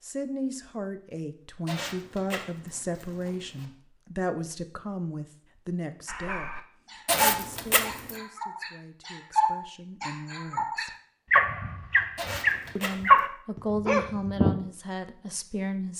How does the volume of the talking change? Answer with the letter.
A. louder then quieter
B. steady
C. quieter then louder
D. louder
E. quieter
C.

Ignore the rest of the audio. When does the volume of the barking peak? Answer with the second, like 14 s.
13 s.